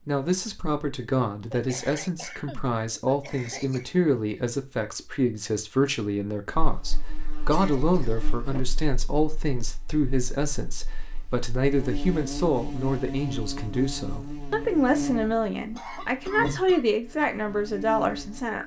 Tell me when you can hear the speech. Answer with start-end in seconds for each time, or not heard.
0.1-18.6.